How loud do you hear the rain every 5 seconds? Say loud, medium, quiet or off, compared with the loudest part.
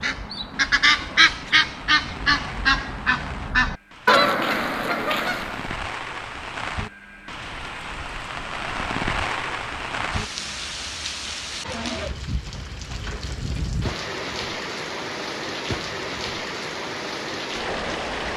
medium, loud, loud, loud.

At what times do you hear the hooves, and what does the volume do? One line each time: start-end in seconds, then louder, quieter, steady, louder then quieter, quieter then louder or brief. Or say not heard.
not heard.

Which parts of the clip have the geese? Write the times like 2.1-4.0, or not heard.
0.0-5.8.